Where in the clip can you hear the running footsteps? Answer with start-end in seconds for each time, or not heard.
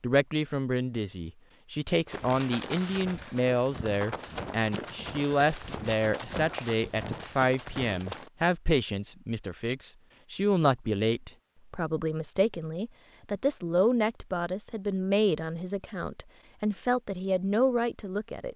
2.0-8.3.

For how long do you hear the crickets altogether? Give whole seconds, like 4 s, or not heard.
not heard.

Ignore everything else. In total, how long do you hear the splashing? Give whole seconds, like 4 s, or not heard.
not heard.